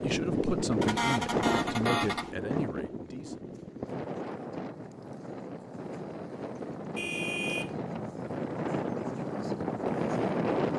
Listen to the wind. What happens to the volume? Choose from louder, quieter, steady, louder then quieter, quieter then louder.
quieter then louder.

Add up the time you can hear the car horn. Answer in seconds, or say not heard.
2 s.